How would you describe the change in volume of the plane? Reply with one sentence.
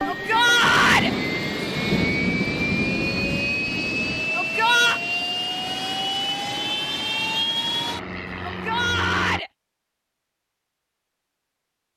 The loudness of the plane stays about the same.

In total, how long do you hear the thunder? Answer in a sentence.
The thunder can be heard for 4 seconds in total.